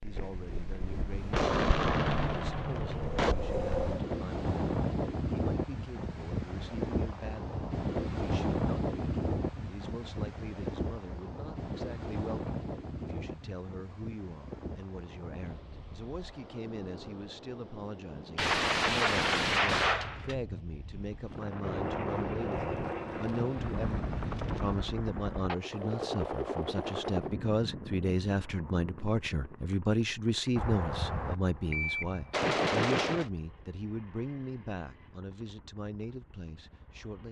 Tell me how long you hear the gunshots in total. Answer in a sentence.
The gunshots can be heard for 7 seconds in total.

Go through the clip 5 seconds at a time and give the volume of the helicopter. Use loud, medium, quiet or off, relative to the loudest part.
off, off, off, off, loud, loud, quiet, quiet.